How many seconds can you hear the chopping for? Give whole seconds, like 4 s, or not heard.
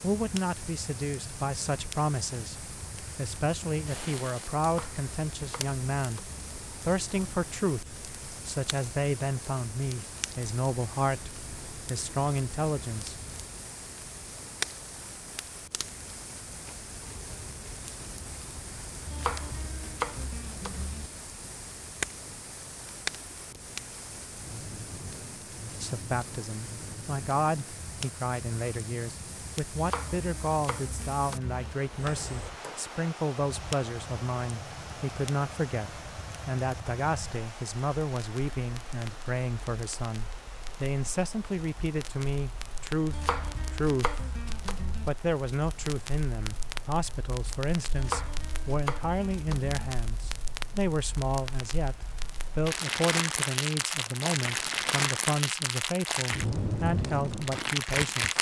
10 s.